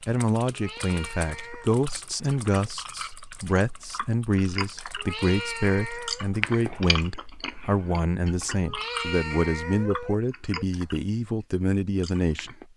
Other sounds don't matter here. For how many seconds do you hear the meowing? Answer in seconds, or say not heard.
5 s.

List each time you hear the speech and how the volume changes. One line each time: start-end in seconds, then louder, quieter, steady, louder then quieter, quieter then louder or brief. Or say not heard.
0.1-12.6 steady.